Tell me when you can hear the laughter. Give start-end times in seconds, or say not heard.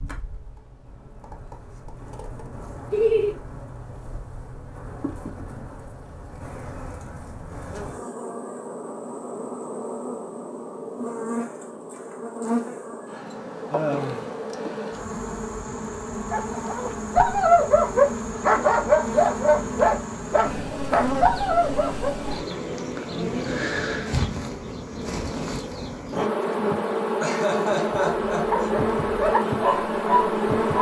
2.9-3.4, 13.7-14.2, 27.2-28.7.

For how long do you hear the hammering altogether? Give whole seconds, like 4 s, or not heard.
not heard.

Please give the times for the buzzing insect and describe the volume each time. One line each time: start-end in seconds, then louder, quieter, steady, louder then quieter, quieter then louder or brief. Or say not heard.
0.0-30.7 louder.